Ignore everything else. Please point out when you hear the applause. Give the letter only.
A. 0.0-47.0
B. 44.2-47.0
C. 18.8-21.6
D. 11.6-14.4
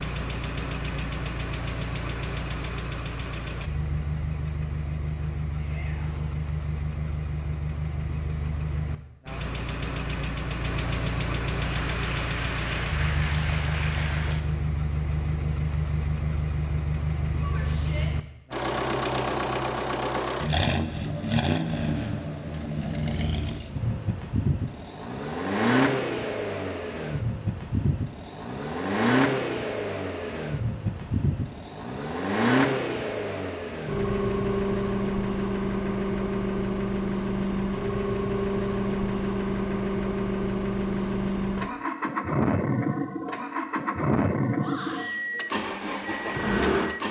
D.